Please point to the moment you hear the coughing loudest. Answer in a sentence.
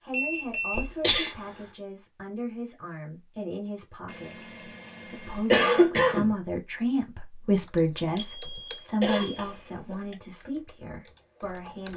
The loudest moment of the coughing is at 6 seconds.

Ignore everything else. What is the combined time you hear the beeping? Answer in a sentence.
The beeping can be heard for 4 seconds in total.